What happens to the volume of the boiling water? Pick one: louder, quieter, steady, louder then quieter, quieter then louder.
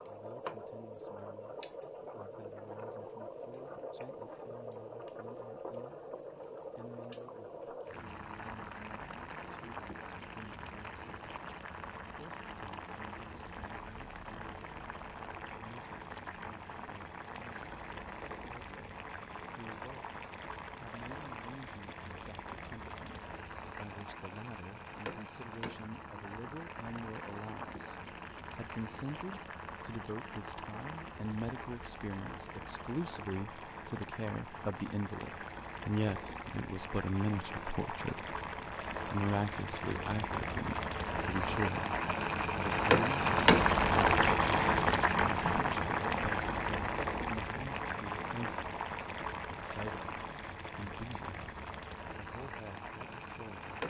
louder.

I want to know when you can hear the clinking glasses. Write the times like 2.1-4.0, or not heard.
not heard.